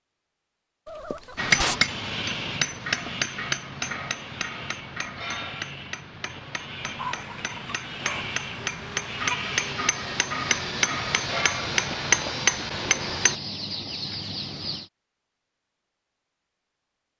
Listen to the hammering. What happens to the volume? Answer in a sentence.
The volume of the hammering goes down, then up.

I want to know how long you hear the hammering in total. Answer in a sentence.
You can hear the hammering for 12 seconds altogether.